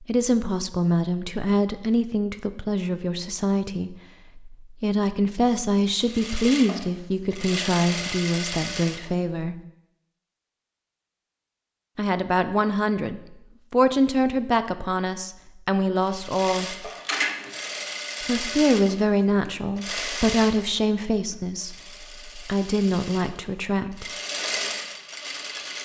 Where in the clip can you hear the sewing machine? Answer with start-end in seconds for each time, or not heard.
6.0-9.1, 16.1-25.8.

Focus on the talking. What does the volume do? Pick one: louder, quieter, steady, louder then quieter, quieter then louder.
steady.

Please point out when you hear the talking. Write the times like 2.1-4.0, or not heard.
0.0-9.6, 11.9-16.9, 18.2-24.1.